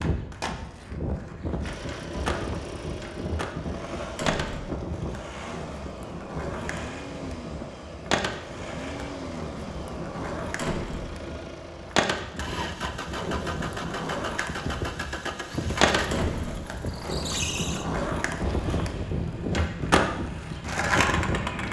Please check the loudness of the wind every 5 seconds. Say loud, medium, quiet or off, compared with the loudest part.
loud, medium, medium, loud, loud.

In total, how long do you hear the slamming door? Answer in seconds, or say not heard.
2 s.